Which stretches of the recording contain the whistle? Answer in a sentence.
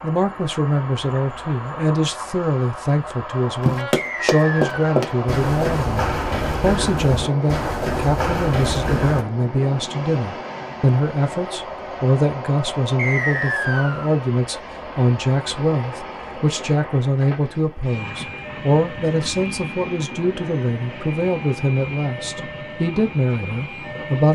You can hear the whistle from 4.0 to 4.8 s and from 12.9 to 14.1 s.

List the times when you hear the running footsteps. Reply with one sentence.
You can hear the running footsteps from 3.6 to 9.2 s.